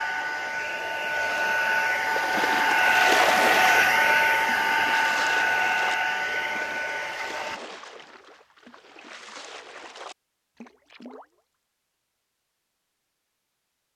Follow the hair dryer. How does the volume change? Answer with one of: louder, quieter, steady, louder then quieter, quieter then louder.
louder then quieter.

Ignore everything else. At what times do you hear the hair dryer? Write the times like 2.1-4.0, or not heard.
0.0-7.6.